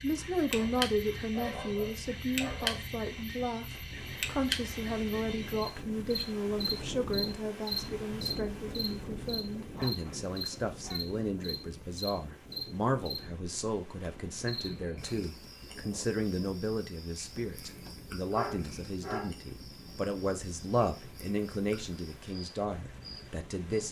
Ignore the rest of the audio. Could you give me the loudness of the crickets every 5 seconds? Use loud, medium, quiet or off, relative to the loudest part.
loud, loud, loud, quiet, quiet.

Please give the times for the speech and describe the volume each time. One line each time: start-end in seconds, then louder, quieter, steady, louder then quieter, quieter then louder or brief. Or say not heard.
0.0-23.8 steady.